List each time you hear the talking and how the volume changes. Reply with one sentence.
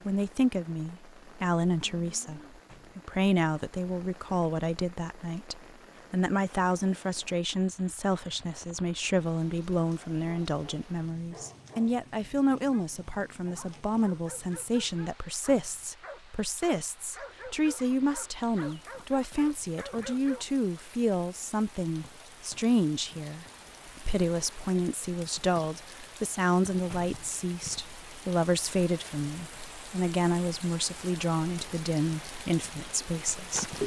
You can hear the talking from 0.1 to 33.6 s, at a steady volume.